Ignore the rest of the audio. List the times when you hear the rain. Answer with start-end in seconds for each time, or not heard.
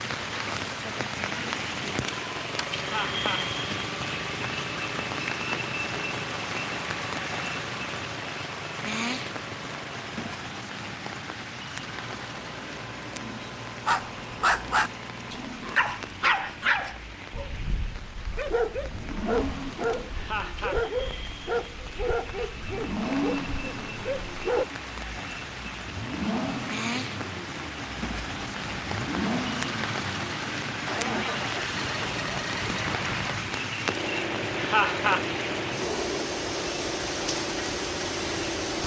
0.0-38.8.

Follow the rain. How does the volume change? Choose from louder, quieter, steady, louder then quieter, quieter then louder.
quieter then louder.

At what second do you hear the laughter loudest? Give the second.
35 s.